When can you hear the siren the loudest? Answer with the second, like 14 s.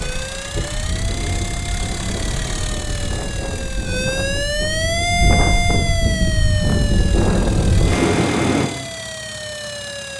5 s.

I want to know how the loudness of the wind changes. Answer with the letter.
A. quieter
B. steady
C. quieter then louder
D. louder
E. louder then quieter
D.